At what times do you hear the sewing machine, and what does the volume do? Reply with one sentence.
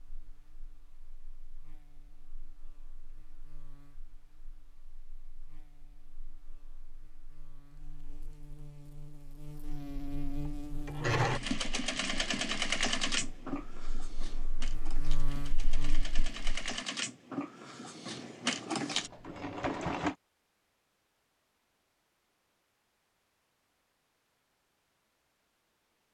The sewing machine can be heard from 10.8 to 20.1 s, getting quieter then louder.